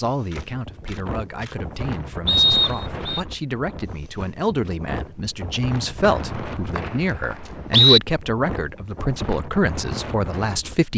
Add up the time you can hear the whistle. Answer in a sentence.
You can hear the whistle for 3 seconds altogether.